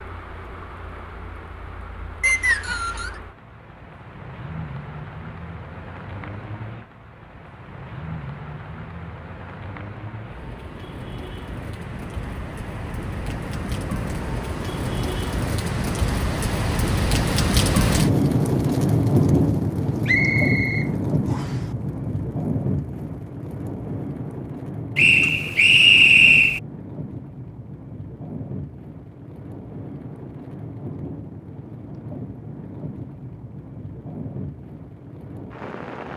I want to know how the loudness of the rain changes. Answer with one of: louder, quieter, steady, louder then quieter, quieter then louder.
louder then quieter.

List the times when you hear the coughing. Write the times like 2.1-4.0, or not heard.
not heard.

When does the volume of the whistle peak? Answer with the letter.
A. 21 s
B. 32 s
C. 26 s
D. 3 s
C.